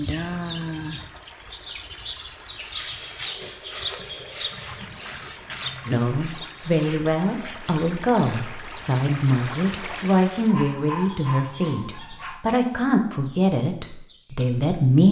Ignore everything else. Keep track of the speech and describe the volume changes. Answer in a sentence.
The loudness of the speech stays about the same.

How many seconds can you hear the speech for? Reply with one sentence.
You can hear the speech for 9 seconds altogether.